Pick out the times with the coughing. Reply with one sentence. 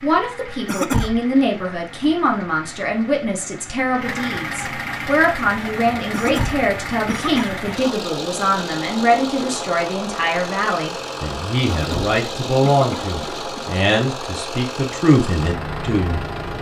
You can hear the coughing from 0.7 to 1.2 s, from 6.1 to 7.8 s and from 11.7 to 13.7 s.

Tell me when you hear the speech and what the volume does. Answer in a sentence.
The speech can be heard from 0.0 to 16.5 s, at a steady volume.